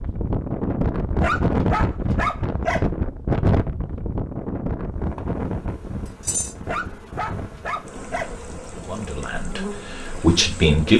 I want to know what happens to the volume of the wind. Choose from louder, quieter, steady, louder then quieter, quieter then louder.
quieter.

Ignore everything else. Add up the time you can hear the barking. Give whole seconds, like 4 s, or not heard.
3 s.